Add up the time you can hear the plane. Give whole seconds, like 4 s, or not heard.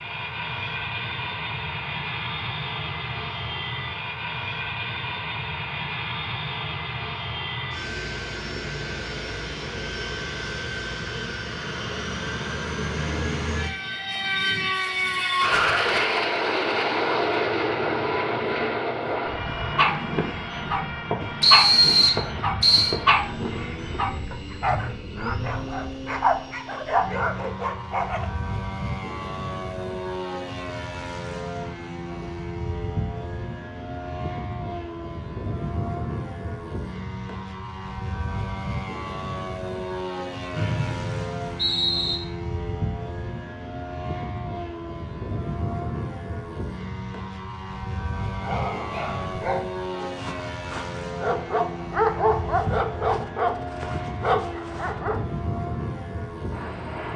57 s.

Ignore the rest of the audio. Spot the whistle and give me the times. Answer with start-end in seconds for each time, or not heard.
21.4-22.9, 40.5-42.1.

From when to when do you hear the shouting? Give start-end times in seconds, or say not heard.
not heard.